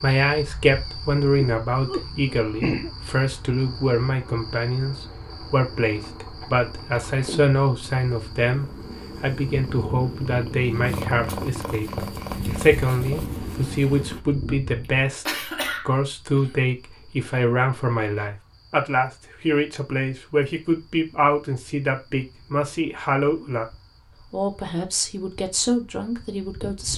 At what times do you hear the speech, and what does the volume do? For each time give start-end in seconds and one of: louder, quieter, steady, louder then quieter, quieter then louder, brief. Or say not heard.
0.0-23.6 steady
24.3-26.9 brief.